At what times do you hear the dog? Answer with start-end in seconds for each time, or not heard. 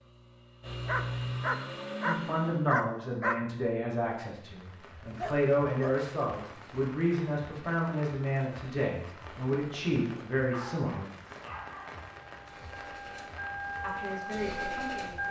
0.7-3.4, 5.2-6.0, 10.5-12.0.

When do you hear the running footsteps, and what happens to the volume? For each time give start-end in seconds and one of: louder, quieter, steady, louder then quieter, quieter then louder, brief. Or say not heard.
not heard.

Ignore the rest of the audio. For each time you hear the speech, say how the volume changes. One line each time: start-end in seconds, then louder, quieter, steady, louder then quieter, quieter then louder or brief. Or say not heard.
2.0-11.1 steady
13.8-15.2 brief.